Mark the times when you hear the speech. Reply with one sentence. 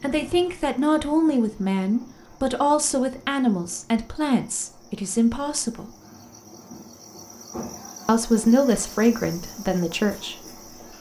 You can hear the speech from 0.0 to 5.9 s and from 8.1 to 10.9 s.